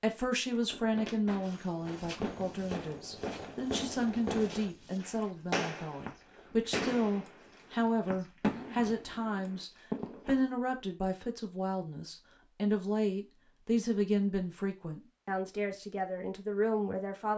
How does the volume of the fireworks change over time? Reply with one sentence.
The loudness of the fireworks goes up.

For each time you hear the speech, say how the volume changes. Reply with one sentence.
The speech can be heard from 0.0 to 17.3 s, at a steady volume.